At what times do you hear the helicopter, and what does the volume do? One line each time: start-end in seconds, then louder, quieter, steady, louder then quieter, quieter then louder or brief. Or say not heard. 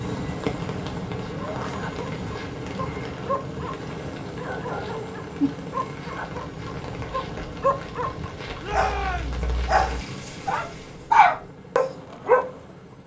0.0-13.0 quieter.